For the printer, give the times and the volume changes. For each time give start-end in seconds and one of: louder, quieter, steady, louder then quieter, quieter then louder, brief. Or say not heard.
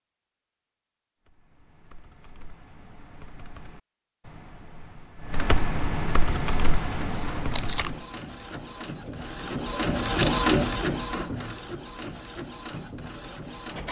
6.4-13.8 louder then quieter.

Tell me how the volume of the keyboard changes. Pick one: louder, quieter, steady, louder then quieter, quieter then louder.
louder.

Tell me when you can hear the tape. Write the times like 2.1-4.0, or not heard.
7.5-7.9.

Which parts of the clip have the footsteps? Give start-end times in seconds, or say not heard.
not heard.